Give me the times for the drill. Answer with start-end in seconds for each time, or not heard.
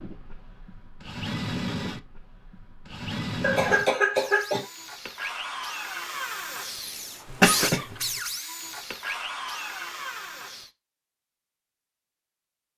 0.0-10.7.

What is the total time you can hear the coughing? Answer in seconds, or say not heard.
2 s.